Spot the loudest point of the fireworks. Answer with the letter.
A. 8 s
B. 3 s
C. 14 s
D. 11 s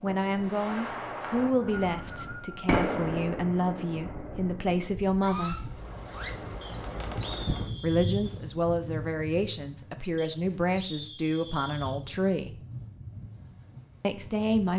B.